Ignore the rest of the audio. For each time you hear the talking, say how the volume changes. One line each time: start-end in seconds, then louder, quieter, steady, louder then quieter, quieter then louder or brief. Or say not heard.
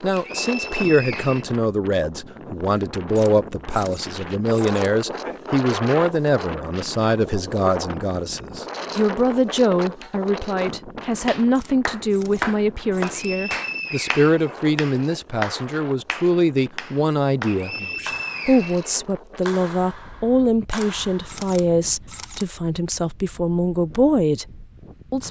0.0-25.2 steady.